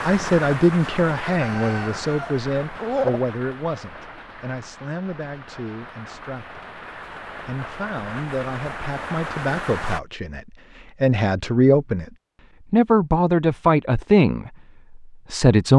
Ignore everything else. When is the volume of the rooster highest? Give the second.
3 s.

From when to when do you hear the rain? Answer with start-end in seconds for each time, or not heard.
0.0-10.0.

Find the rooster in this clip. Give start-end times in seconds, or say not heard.
1.2-3.2.